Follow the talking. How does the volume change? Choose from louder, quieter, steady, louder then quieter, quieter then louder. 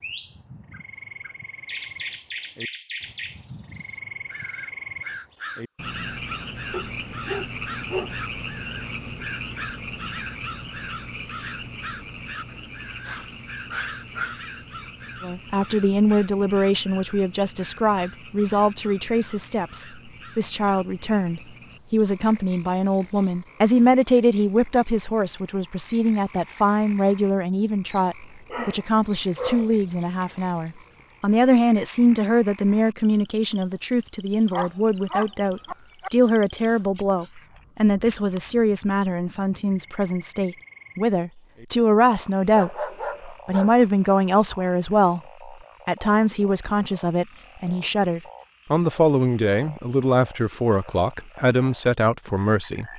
steady.